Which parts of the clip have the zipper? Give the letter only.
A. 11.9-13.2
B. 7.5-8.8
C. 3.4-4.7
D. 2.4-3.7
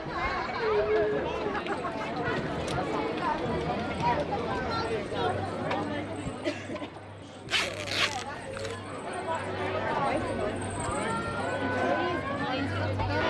B.